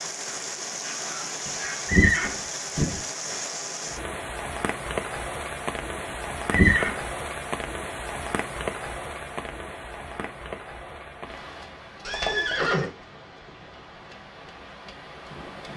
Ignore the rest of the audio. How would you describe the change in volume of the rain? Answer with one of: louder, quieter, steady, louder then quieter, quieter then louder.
quieter.